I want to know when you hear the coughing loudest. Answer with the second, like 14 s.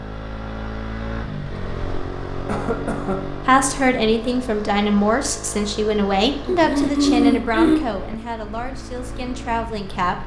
7 s.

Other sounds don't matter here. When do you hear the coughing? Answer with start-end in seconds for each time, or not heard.
2.5-3.1, 6.4-7.8.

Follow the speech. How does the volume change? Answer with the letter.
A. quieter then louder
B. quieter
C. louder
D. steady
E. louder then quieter
B.